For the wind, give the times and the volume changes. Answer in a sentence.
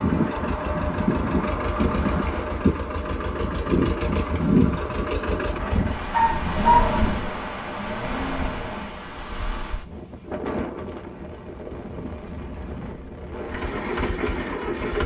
The wind can be heard from 0.0 to 15.0 s, getting quieter.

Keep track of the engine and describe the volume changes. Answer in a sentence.
The loudness of the engine goes down, then up.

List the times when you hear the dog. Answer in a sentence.
You can hear the dog from 5.6 to 7.0 s.